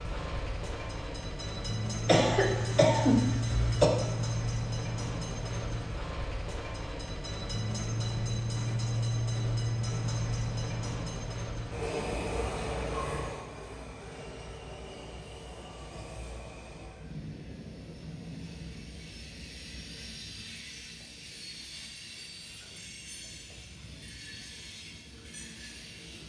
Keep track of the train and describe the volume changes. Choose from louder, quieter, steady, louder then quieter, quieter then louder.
quieter.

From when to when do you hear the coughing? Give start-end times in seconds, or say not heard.
2.0-3.9.